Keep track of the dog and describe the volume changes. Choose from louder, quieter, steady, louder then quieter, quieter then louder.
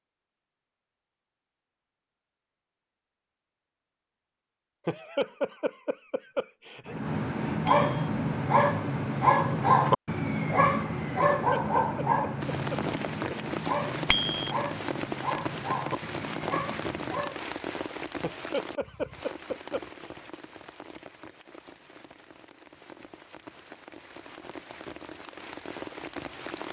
quieter.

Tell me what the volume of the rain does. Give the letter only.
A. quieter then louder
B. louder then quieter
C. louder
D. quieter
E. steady
A.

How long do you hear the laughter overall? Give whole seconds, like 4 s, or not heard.
6 s.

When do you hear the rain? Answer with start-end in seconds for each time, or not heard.
12.4-26.6.